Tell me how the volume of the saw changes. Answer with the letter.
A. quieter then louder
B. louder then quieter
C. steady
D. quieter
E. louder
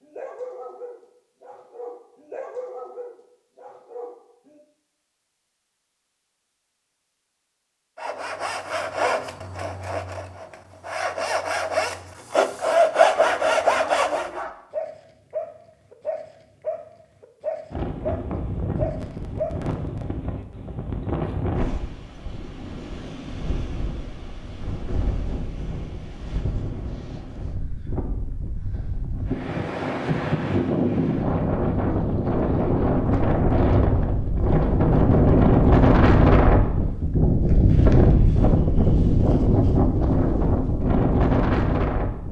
A.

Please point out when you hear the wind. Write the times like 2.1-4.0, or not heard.
17.7-42.2.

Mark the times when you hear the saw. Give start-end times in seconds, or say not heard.
8.0-14.4.